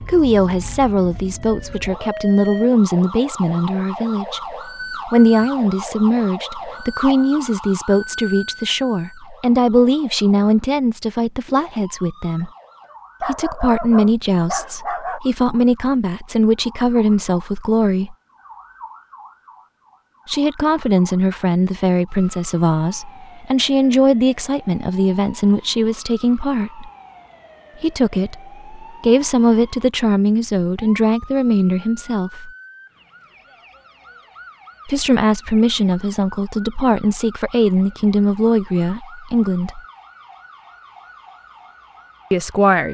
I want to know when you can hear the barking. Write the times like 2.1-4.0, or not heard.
13.2-15.2.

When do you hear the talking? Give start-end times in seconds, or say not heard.
0.0-12.5, 13.2-18.1, 20.2-26.9, 27.8-32.5, 34.9-39.8, 42.3-42.9.